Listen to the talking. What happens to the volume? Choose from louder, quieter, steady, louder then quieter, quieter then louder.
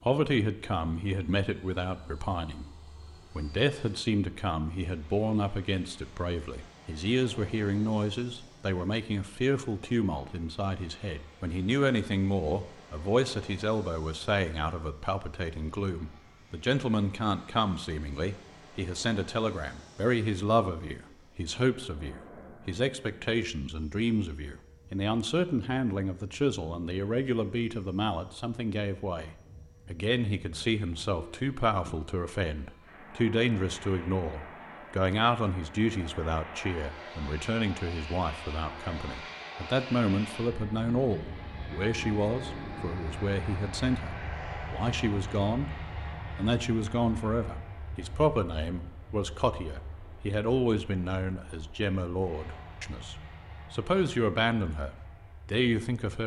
steady.